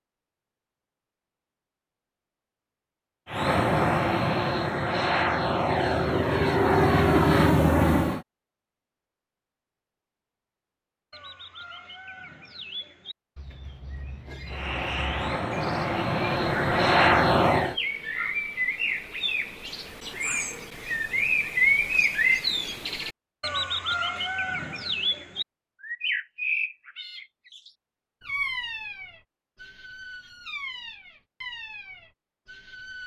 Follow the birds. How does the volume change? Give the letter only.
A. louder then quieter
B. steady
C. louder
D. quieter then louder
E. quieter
A.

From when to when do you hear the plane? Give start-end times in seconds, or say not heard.
3.3-8.2, 14.4-17.8.